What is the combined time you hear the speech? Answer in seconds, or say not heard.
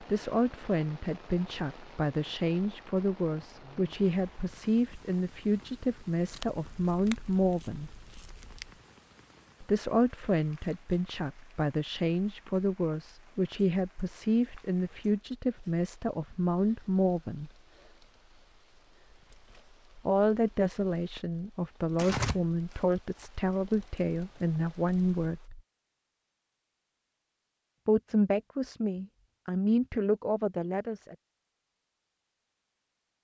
25 s.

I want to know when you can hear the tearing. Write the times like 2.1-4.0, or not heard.
6.3-8.7, 21.9-22.8.